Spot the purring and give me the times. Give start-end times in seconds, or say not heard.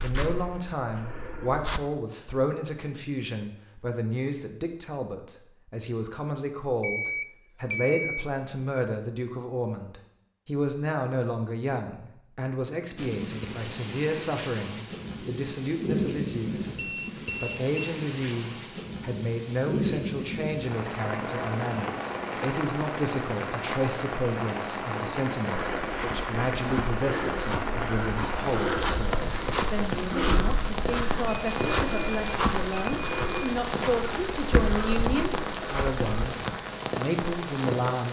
not heard.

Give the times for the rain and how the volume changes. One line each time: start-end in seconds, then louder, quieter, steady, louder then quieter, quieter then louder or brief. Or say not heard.
12.9-38.0 steady.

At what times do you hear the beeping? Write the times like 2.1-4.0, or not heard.
6.8-8.8, 16.8-17.9, 31.2-33.6.